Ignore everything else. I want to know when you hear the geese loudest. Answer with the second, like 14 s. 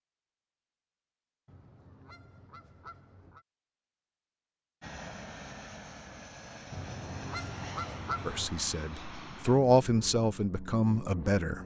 8 s.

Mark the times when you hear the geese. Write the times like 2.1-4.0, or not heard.
1.4-3.5, 6.7-8.5.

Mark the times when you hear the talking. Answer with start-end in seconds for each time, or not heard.
8.2-11.6.